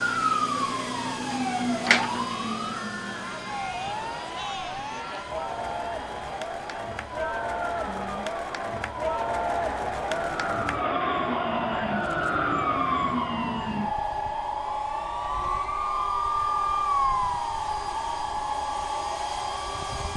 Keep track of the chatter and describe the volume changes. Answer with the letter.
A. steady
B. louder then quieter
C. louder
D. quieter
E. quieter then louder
C.